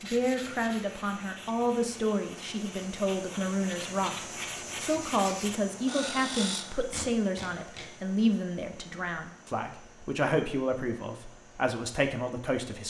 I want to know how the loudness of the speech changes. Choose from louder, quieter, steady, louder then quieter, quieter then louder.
steady.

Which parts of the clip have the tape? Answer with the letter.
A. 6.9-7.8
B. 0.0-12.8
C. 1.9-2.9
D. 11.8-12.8
A.